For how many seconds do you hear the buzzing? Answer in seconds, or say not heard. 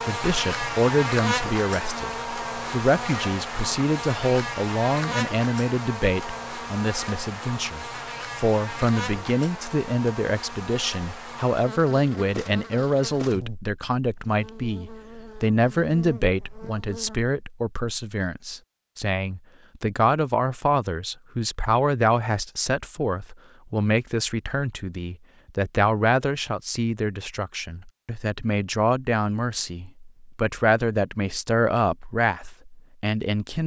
17 s.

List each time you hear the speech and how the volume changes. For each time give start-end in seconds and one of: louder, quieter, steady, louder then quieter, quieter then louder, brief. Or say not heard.
0.1-33.6 steady.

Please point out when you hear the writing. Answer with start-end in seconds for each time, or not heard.
not heard.